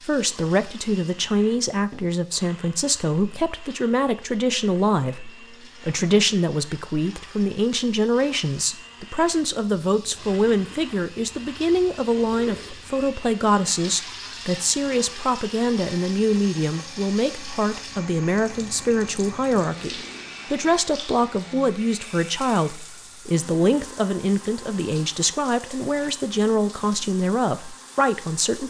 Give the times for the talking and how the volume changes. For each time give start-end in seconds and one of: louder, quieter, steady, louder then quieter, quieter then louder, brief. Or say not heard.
0.1-28.6 steady.